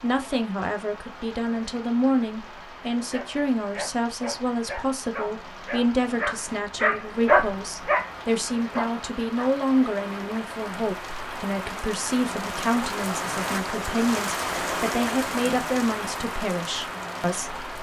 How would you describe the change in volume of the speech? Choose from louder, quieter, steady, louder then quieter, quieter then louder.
steady.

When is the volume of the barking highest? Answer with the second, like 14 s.
7 s.